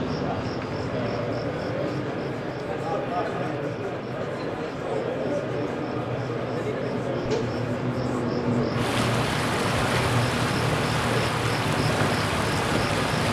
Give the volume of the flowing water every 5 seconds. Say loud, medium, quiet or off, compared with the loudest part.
quiet, medium, loud.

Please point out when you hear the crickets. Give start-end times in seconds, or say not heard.
0.0-13.2.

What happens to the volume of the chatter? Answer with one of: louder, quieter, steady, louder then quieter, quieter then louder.
steady.